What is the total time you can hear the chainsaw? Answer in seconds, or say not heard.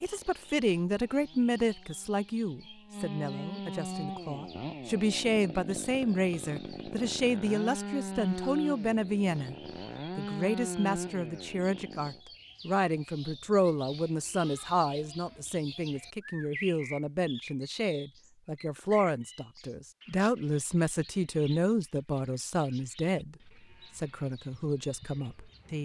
12 s.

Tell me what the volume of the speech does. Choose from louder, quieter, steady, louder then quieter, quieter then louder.
steady.